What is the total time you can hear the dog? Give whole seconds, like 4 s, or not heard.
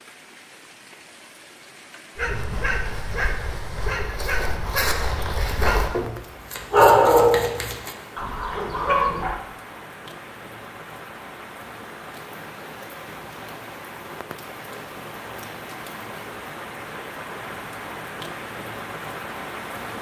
7 s.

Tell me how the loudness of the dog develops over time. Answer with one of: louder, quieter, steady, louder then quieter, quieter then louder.
louder then quieter.